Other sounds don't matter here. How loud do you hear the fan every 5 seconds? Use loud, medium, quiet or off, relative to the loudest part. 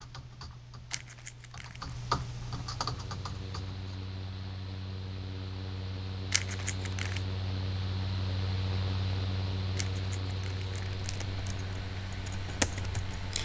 medium, loud, loud.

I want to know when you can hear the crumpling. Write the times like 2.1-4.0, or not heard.
0.9-1.9, 6.3-7.2, 9.8-11.2.